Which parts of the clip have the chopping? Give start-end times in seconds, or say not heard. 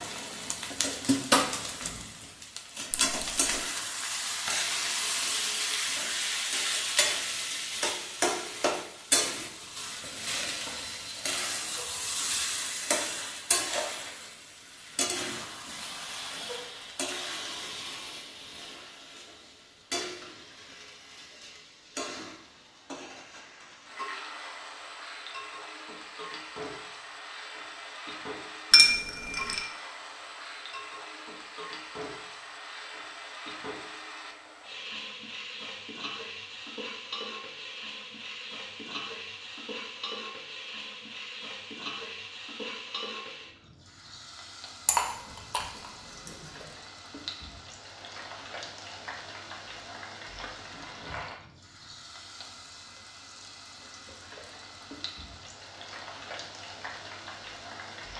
not heard.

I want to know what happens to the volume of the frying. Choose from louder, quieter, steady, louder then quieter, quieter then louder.
quieter.